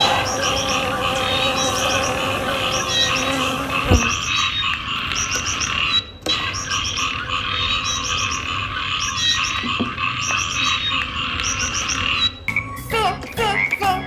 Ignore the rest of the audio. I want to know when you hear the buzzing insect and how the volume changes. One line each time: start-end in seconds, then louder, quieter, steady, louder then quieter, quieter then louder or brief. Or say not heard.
0.0-14.0 quieter.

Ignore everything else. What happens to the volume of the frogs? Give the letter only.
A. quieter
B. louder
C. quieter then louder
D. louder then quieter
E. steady
E.